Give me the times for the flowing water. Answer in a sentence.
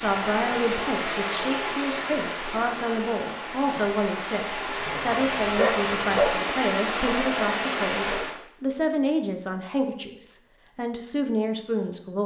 The flowing water can be heard from 0.0 to 8.3 s.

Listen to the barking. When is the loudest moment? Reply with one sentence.
The loudest moment of the barking is at 6 seconds.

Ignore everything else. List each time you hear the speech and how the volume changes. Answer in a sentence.
The speech can be heard from 0.0 to 12.2 s, at a steady volume.